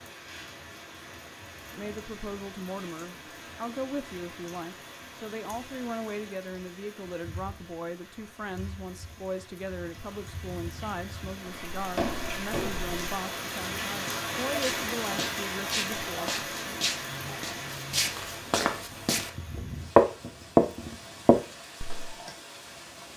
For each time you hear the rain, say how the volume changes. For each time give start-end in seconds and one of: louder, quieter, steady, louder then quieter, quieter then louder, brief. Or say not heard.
0.0-23.1 louder then quieter.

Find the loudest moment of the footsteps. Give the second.
20 s.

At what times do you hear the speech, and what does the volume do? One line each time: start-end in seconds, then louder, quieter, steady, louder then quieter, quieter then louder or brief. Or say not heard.
1.7-16.8 steady.